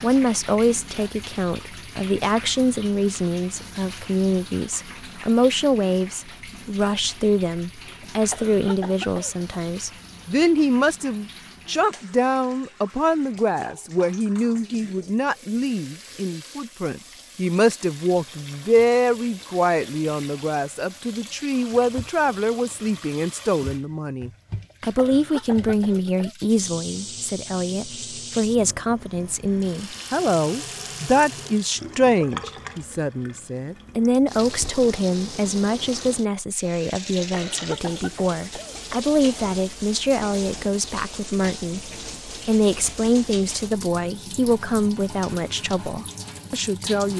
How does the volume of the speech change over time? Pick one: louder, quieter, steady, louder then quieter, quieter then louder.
steady.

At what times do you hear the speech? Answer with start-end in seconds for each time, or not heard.
0.0-47.1.